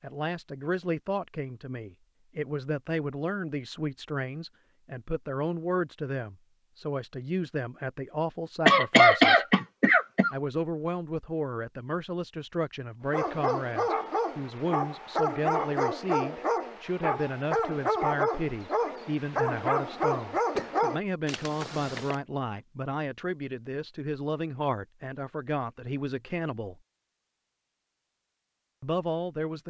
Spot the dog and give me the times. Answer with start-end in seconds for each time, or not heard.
13.1-22.1.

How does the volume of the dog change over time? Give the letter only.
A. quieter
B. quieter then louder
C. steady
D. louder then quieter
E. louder
C.